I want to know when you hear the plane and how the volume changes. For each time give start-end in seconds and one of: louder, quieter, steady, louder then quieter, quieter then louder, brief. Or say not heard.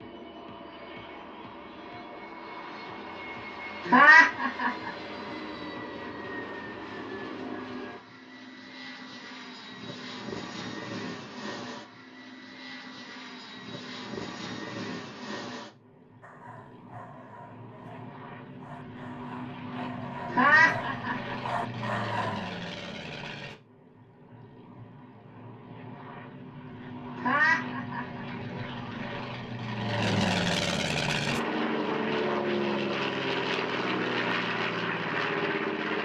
0.0-36.0 louder.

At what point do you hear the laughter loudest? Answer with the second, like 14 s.
4 s.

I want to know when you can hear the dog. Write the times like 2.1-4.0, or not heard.
16.2-22.6.